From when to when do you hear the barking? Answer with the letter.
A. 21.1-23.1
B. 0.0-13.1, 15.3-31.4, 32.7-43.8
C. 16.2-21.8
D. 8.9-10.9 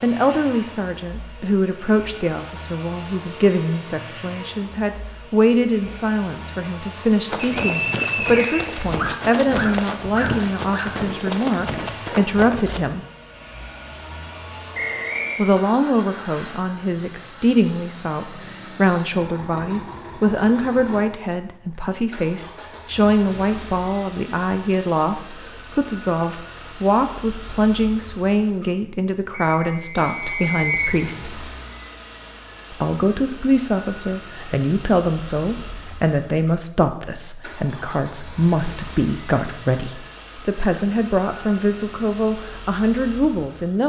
D.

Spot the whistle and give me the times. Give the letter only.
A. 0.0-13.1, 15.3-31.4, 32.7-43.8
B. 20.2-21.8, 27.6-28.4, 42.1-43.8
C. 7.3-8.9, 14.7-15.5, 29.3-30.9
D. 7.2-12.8
C.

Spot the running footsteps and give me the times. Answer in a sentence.
The running footsteps can be heard from 7.2 to 12.8 s.